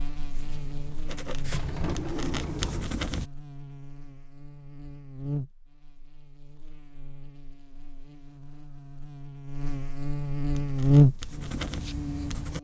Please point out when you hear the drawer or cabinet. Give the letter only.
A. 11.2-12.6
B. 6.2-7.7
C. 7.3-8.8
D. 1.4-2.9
D.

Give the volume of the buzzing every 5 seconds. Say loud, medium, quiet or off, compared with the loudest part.
quiet, quiet, loud.